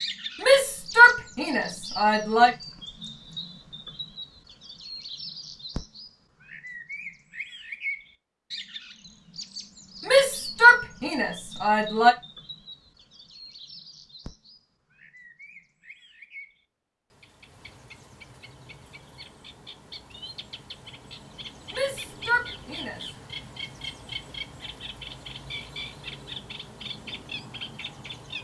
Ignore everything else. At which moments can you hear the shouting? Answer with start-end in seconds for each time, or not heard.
0.4-2.5, 10.1-12.2, 21.7-23.0.